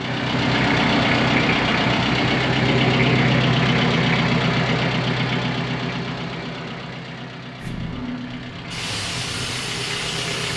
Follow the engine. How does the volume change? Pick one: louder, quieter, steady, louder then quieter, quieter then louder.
quieter.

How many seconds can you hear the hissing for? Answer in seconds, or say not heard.
3 s.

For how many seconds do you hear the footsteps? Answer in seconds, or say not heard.
not heard.